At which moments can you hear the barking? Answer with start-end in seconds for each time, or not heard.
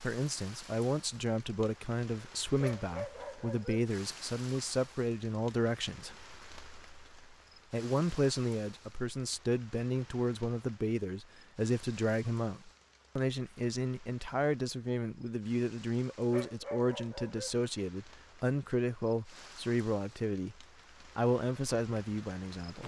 2.6-3.9, 16.3-17.6.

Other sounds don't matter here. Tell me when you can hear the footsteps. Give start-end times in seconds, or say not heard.
not heard.